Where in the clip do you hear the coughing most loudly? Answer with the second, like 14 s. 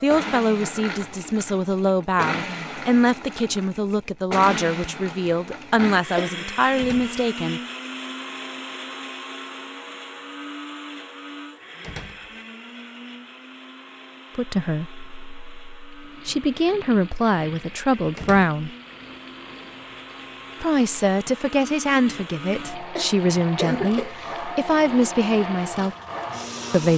24 s.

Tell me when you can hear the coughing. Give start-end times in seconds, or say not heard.
5.8-6.3, 22.9-24.6.